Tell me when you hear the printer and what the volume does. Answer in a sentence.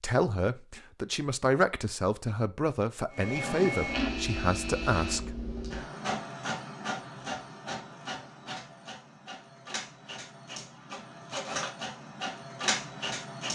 The printer can be heard from 3.1 to 13.4 s, getting quieter then louder.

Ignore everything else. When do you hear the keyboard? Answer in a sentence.
You can't hear the keyboard here.